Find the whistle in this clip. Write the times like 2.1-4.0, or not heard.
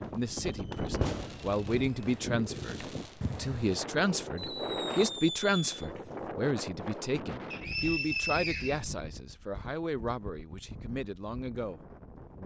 7.5-8.8.